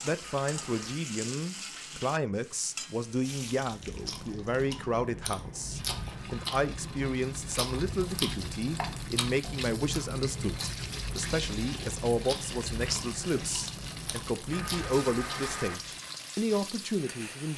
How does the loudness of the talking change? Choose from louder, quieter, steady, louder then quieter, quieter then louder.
steady.